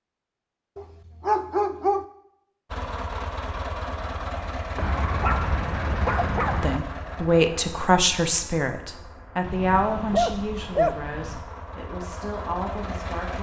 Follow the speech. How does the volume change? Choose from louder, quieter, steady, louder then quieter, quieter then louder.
quieter.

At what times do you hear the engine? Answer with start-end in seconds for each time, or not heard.
2.7-13.3.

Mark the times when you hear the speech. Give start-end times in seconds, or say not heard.
6.6-13.3.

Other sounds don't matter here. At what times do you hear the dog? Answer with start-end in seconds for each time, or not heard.
0.8-2.0, 4.8-6.8, 9.4-11.4.